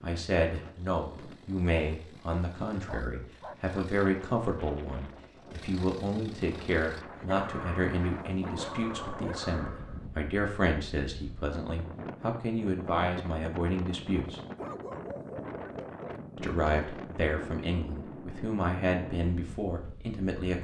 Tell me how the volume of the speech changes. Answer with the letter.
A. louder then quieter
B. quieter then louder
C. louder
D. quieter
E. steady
E.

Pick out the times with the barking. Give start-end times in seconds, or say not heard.
2.8-3.8, 7.2-10.1, 14.6-16.2.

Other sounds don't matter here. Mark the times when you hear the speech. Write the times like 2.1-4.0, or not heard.
0.0-14.4, 16.4-20.5.